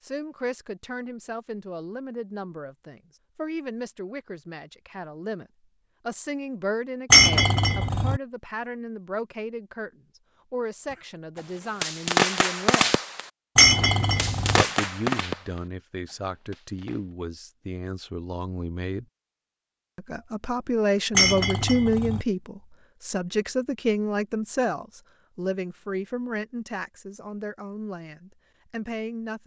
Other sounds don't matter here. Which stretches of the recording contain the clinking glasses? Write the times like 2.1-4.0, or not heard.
7.1-8.2, 13.6-14.7, 21.1-22.2.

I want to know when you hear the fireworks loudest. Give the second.
12 s.